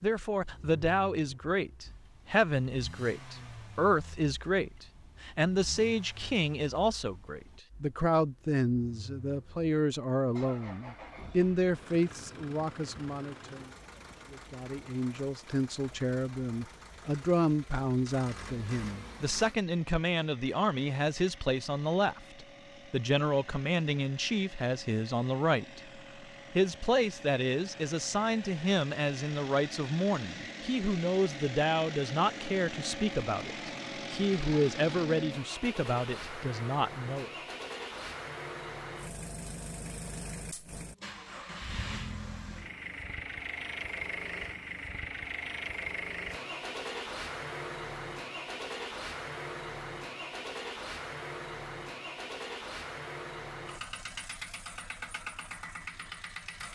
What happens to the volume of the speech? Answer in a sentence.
The loudness of the speech stays about the same.